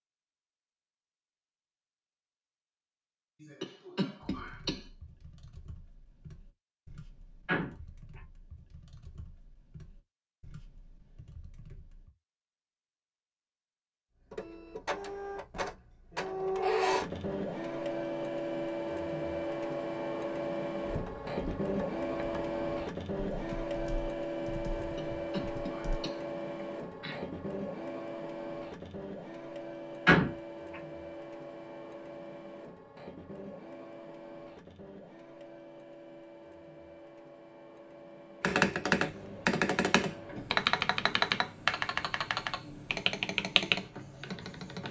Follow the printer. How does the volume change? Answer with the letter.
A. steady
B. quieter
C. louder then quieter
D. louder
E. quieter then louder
B.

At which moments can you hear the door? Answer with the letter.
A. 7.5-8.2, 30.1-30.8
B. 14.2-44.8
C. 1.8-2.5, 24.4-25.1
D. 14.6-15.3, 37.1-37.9
A.